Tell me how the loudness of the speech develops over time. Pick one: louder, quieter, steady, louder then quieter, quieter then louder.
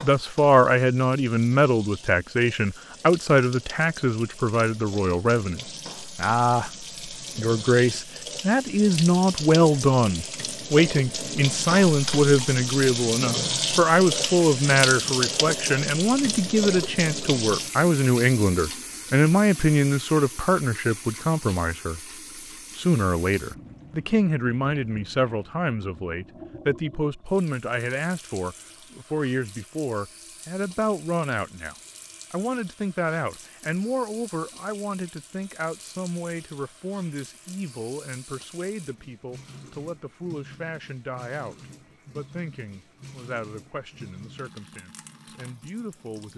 quieter.